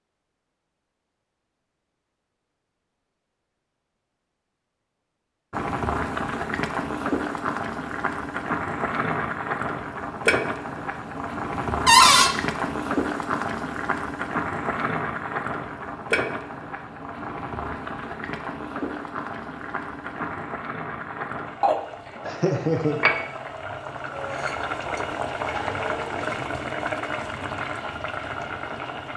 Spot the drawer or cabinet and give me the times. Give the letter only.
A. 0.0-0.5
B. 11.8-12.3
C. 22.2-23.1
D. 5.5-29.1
B.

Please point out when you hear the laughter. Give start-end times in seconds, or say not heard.
22.2-23.1.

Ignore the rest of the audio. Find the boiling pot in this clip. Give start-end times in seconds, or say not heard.
5.5-29.1.